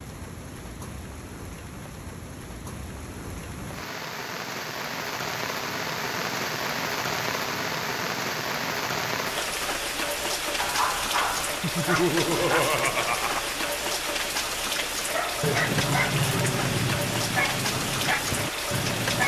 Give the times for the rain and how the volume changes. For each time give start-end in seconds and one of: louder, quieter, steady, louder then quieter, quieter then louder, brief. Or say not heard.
0.0-19.2 louder.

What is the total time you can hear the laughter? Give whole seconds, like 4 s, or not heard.
2 s.